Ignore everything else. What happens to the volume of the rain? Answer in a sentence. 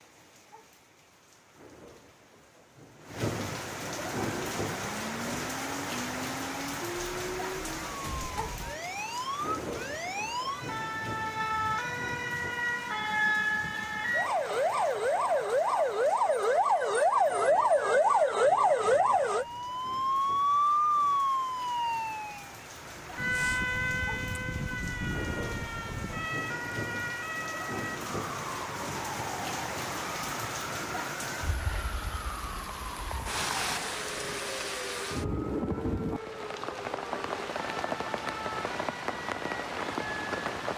The loudness of the rain goes down, then up.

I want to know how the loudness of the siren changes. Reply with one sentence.
The volume of the siren goes up, then down.